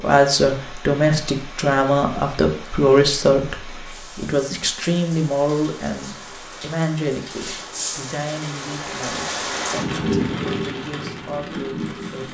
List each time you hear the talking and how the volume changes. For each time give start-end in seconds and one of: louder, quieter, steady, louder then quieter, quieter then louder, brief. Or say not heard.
0.0-12.2 quieter.